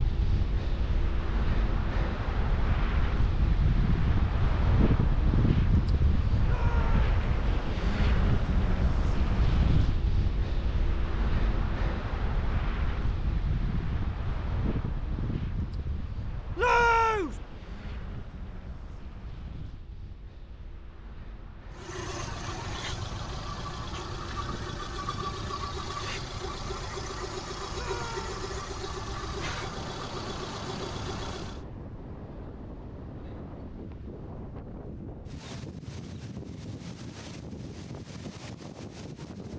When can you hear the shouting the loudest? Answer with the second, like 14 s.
17 s.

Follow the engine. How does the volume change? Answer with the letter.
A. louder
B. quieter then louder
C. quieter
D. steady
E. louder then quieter
D.